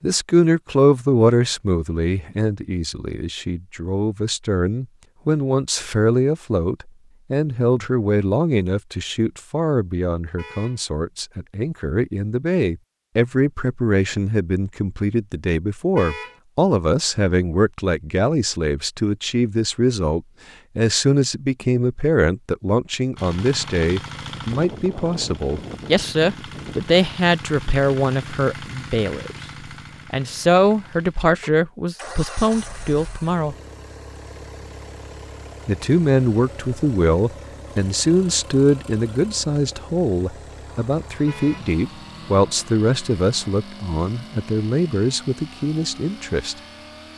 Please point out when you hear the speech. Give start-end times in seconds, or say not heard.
0.0-29.4, 30.1-33.5, 35.6-46.5.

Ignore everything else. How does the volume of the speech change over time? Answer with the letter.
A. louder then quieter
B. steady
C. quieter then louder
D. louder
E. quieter
B.